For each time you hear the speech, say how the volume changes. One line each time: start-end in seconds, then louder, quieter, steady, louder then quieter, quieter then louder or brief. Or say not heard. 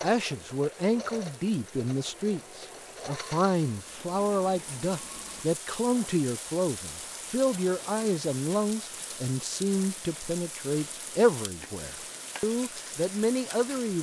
0.0-13.9 steady.